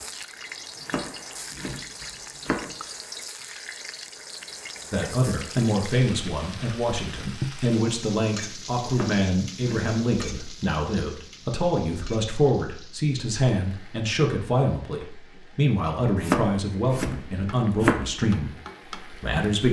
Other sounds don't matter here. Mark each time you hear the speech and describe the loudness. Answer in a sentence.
The speech can be heard from 4.9 to 19.6 s, at a steady volume.